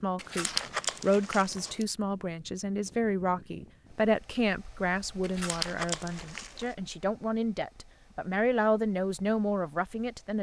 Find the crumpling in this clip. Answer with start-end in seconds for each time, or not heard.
0.1-1.9, 5.2-6.7.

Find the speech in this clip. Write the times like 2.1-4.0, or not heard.
0.0-10.3.